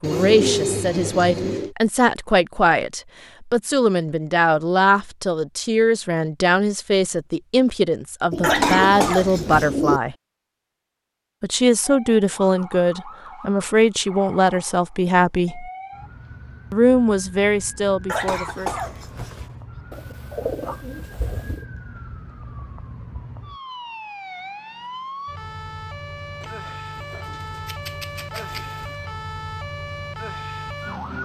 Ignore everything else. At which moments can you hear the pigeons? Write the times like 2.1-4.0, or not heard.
0.0-1.8, 8.3-10.0, 19.9-21.6, 26.4-28.9.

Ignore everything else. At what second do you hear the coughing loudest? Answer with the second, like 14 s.
9 s.